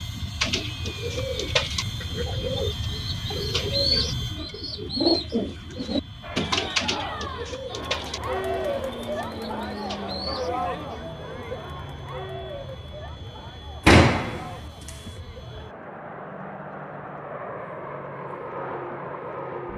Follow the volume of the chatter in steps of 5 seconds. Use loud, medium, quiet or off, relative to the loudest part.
off, loud, loud, medium.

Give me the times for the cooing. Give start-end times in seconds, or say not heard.
0.4-10.6.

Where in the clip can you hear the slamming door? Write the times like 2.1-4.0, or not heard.
13.8-15.1.